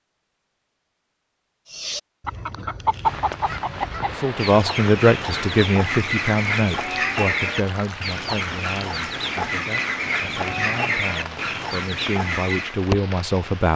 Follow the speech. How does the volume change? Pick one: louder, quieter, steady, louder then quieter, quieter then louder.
quieter then louder.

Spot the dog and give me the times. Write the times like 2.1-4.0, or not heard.
not heard.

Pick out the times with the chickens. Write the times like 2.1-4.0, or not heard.
1.6-12.8.